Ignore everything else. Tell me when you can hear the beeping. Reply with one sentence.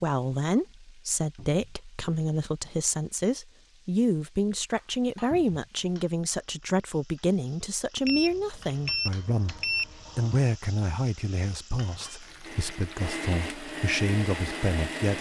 You can hear the beeping from 8.1 to 10.6 s.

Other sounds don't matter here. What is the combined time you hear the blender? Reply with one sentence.
The blender can be heard for 3 seconds in total.